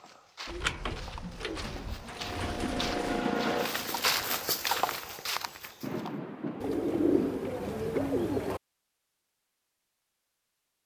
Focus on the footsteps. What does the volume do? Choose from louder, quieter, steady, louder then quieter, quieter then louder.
louder.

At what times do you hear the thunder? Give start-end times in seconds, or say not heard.
5.8-7.7.